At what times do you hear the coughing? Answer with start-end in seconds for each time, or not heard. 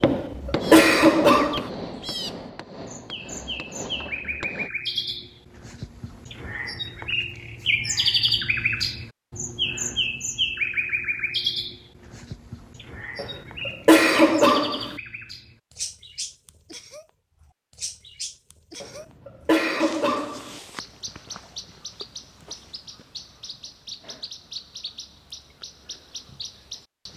0.0-1.7, 13.2-14.9, 18.8-20.6.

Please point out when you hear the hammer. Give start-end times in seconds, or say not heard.
0.0-4.7.